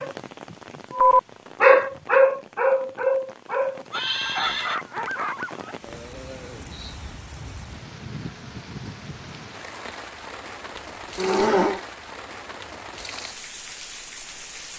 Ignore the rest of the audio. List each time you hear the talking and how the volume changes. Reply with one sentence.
The talking can't be heard in this clip.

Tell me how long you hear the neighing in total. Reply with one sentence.
You can hear the neighing for 2 seconds altogether.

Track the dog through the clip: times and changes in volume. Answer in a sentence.
You can hear the dog from 0.0 to 5.8 s, getting quieter.